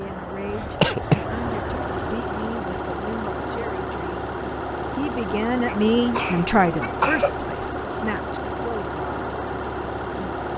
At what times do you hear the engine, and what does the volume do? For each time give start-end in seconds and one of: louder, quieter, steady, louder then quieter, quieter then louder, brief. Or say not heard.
0.0-10.5 steady.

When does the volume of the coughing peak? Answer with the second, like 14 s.
1 s.